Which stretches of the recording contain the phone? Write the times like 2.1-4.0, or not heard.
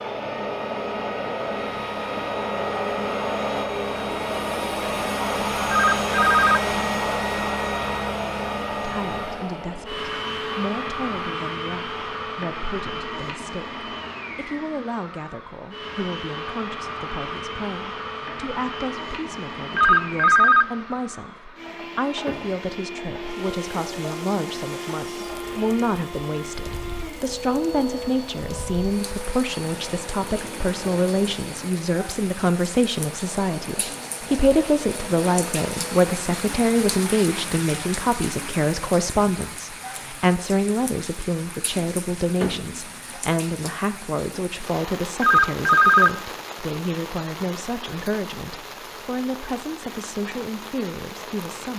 5.7-6.7, 19.8-20.7, 45.2-46.1.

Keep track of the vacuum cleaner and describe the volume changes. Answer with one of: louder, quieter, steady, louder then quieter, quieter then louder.
quieter.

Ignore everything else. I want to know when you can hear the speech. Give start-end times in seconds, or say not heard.
8.8-51.7.